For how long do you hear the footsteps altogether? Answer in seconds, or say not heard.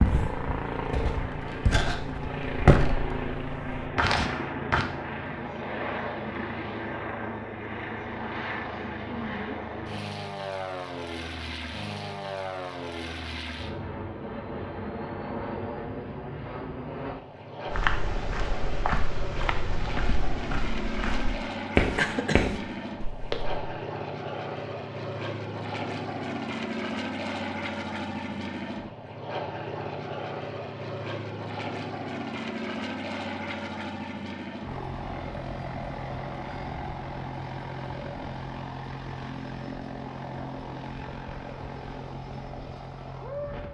11 s.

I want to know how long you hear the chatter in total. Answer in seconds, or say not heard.
not heard.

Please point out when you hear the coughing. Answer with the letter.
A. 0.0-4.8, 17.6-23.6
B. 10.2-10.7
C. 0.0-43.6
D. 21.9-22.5
D.